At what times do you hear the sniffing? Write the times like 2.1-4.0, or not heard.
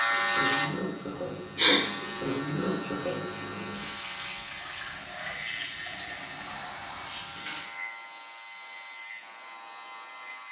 1.1-1.8.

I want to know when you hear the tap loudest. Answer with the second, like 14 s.
3 s.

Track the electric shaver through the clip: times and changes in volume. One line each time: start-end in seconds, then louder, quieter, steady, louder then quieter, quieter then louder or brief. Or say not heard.
0.0-10.4 quieter.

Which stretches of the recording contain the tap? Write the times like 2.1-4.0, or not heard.
0.0-7.7.